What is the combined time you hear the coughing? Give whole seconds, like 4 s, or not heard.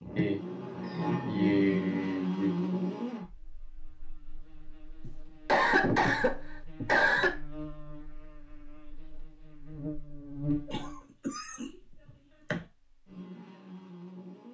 7 s.